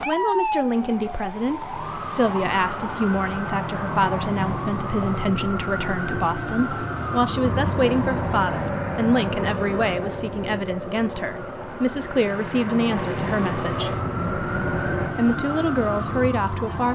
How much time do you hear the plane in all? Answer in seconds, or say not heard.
8 s.